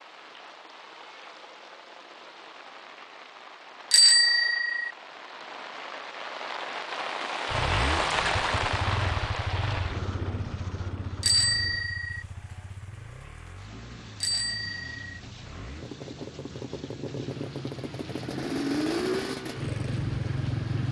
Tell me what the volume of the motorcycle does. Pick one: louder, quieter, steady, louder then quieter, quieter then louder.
quieter then louder.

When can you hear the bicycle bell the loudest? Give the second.
4 s.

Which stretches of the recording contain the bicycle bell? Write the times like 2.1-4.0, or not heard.
3.9-4.9, 11.2-12.2, 14.2-15.2.